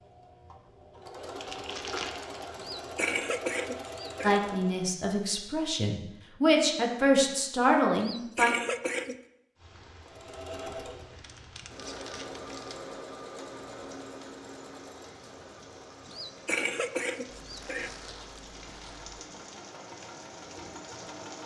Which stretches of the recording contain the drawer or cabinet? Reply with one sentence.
You can't hear the drawer or cabinet here.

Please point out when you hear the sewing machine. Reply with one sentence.
The sewing machine can be heard from 0.0 to 4.9 s and from 10.0 to 21.4 s.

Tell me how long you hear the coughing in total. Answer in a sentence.
You can hear the coughing for 5 seconds altogether.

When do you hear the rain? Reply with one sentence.
The rain can be heard from 9.6 to 21.4 s.